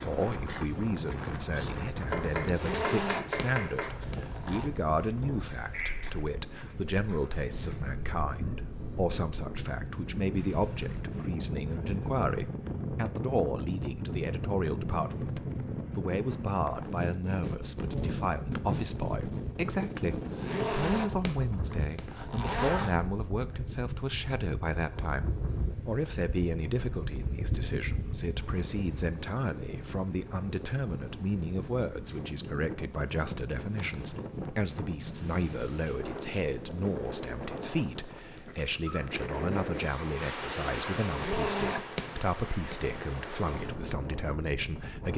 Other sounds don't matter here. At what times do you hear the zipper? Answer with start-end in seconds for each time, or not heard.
2.5-4.7, 20.4-22.9, 41.1-43.0.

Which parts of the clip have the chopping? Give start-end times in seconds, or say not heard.
2.1-4.0.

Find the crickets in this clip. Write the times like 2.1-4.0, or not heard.
0.0-29.1.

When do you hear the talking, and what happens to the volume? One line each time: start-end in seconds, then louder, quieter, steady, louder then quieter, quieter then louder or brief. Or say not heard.
0.0-45.1 steady.